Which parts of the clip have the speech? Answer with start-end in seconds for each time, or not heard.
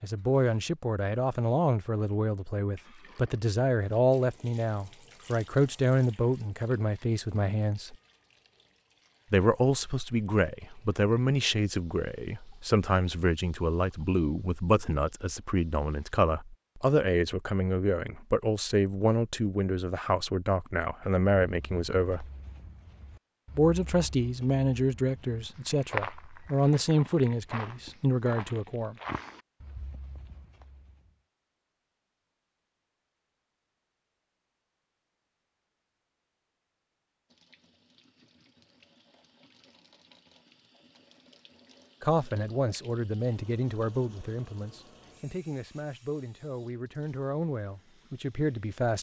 0.0-8.0, 9.3-22.2, 23.6-28.9, 42.0-48.9.